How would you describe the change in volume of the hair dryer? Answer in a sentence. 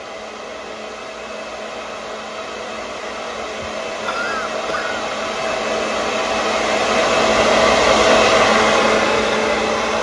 The volume of the hair dryer goes up.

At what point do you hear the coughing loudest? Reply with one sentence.
The volume of the coughing peaks at 4 seconds.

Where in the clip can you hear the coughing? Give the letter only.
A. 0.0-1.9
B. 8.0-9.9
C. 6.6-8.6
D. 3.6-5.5
D.